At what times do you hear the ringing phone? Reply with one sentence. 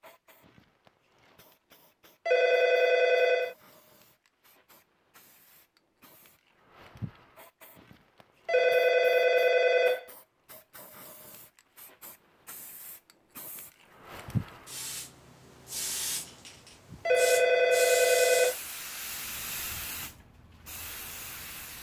You can hear the ringing phone from 2.2 to 3.5 s, from 8.4 to 10.1 s and from 17.1 to 18.6 s.